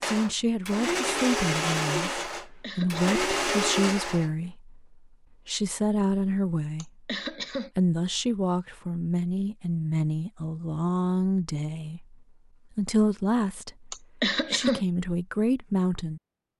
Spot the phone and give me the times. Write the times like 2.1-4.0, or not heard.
not heard.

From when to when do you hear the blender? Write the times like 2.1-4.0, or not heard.
0.0-4.3.